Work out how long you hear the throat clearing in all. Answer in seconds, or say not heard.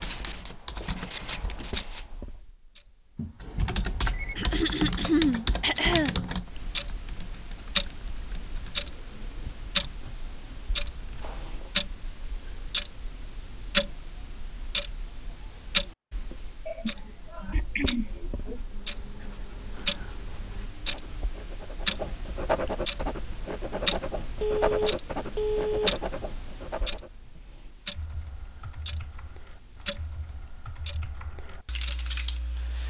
4 s.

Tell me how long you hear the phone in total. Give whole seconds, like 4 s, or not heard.
3 s.